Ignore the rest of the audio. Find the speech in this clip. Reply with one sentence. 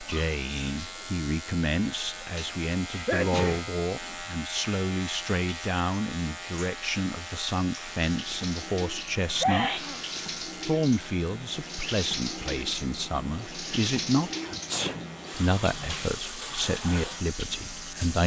You can hear the speech from 0.0 to 9.8 s, from 10.6 to 14.3 s and from 15.3 to 18.2 s.